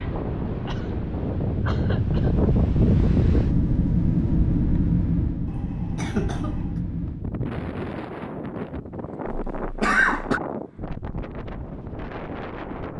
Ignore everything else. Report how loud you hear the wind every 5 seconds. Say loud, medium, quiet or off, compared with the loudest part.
loud, medium, medium.